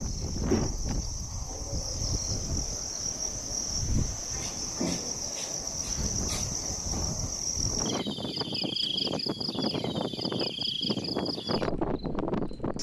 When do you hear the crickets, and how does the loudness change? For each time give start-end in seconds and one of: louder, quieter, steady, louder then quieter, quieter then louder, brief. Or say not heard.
0.0-12.7 steady.